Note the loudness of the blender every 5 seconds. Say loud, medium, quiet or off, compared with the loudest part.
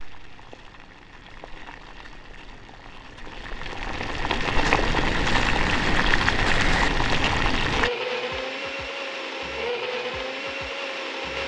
off, loud, loud.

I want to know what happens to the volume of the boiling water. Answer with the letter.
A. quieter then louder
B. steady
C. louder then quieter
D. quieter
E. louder
E.